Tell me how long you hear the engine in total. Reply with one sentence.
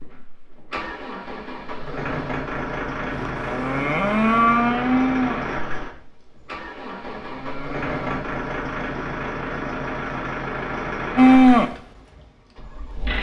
The engine can be heard for 13 seconds in total.